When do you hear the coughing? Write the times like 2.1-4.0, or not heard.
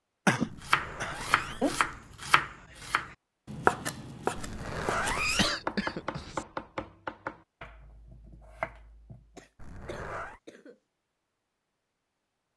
0.2-1.6, 5.2-6.5, 9.3-10.8.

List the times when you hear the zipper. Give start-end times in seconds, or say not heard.
0.5-1.8, 4.3-5.5, 9.6-10.4.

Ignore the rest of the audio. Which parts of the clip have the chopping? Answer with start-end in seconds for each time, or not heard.
0.7-9.4.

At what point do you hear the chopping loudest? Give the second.
4 s.